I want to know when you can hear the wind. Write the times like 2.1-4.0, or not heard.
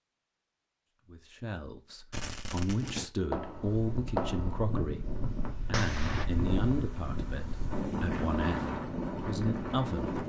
3.4-10.2.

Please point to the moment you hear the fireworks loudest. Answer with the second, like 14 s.
4 s.